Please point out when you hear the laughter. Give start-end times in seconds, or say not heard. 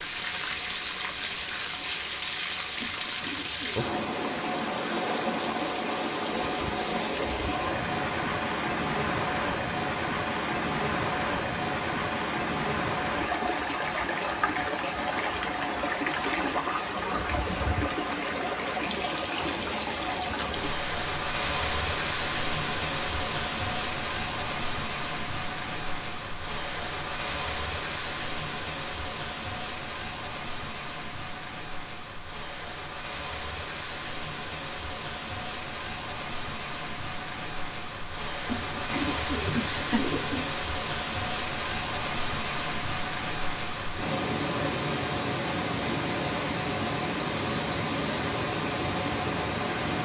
39.5-40.1.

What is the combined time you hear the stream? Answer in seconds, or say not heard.
50 s.